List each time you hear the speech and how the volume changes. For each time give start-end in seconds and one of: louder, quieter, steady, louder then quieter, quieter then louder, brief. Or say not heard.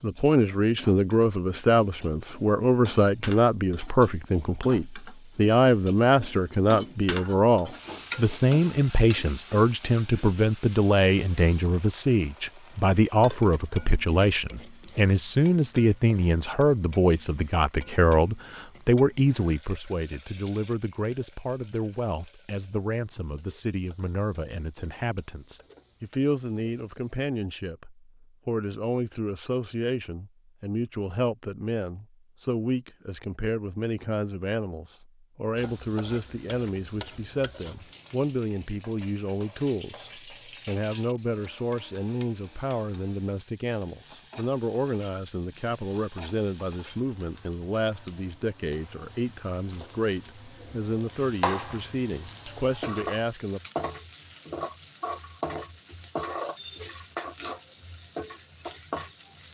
0.0-53.6 quieter.